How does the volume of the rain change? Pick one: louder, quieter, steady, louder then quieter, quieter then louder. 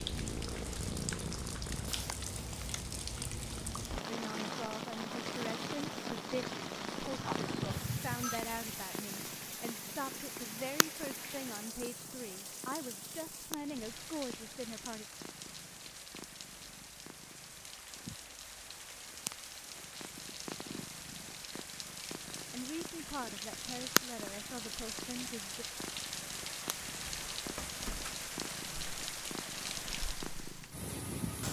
quieter then louder.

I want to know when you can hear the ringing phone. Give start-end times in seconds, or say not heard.
7.2-8.4.